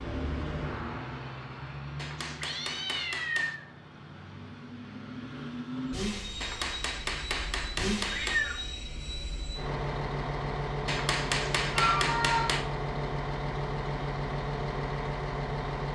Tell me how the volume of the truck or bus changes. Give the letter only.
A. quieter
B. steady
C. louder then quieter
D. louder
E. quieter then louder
D.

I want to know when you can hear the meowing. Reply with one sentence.
The meowing can be heard from 2.2 to 3.5 s, from 8.1 to 8.6 s and from 11.7 to 12.6 s.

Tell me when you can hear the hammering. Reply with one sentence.
You can hear the hammering from 1.9 to 3.6 s, from 6.4 to 8.4 s and from 10.8 to 12.7 s.